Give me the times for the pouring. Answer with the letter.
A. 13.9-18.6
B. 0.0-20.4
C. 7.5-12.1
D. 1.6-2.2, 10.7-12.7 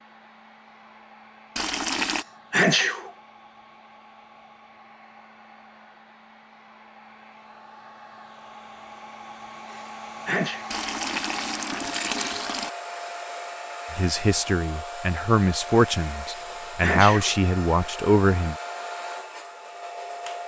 D.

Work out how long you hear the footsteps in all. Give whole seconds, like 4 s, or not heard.
not heard.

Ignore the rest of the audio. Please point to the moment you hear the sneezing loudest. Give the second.
3 s.